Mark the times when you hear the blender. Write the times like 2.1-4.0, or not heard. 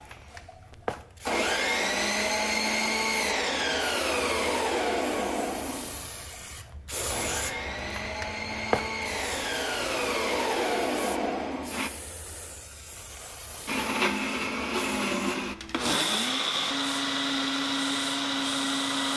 0.0-11.9, 13.7-19.1.